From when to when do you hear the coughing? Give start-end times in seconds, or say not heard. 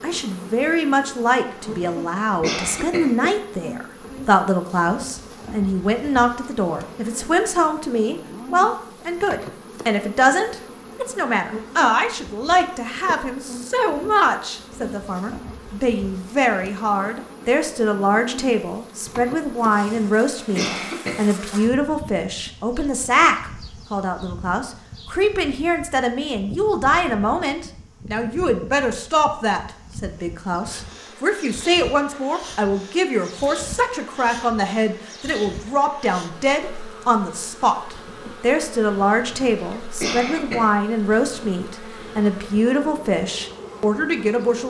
1.5-3.1, 19.6-21.2, 39.2-40.7.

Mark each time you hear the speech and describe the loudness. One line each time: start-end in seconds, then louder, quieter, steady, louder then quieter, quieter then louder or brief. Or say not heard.
0.0-44.6 steady.